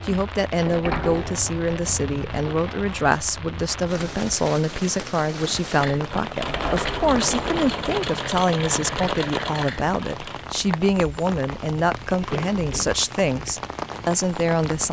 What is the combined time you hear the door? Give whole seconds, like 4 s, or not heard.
5 s.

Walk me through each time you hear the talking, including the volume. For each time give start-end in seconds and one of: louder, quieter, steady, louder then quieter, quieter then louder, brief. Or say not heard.
0.1-14.8 steady.